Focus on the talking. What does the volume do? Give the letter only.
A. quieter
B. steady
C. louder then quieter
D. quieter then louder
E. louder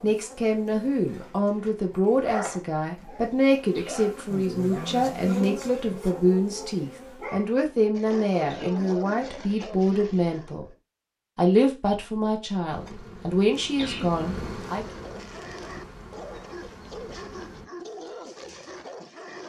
B.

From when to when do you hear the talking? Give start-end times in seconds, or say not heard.
0.0-10.7, 11.3-14.8.